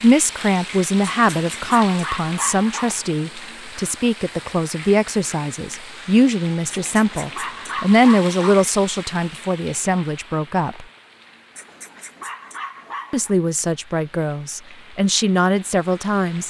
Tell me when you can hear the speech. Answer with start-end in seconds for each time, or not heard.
0.0-10.8, 13.1-16.4.